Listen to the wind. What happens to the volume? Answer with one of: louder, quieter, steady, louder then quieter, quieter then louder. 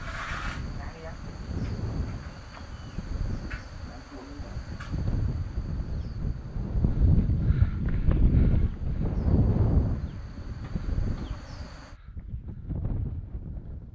louder then quieter.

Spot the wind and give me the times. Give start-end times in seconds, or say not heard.
0.0-13.9.